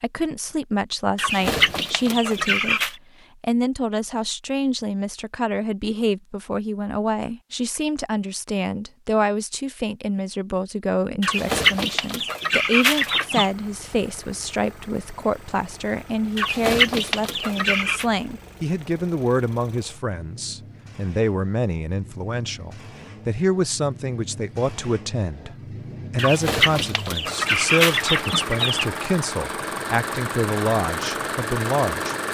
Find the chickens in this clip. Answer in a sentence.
You can hear the chickens from 1.1 to 3.0 s, from 11.2 to 13.5 s, from 16.4 to 18.1 s and from 26.1 to 28.9 s.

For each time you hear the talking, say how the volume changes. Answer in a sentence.
The talking can be heard from 0.0 to 32.1 s, at a steady volume.